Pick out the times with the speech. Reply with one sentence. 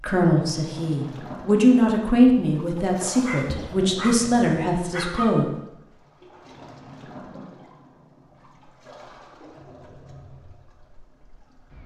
You can hear the speech from 0.0 to 5.5 s.